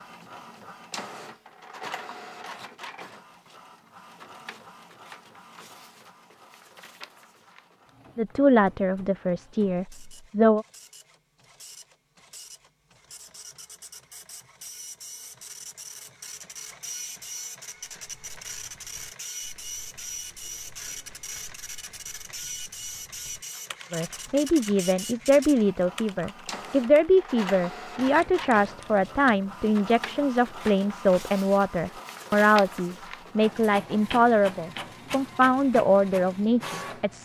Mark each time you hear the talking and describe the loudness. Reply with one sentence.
The talking can be heard briefly from 8.2 to 10.7 s; and from 23.9 to 37.2 s, at a steady volume.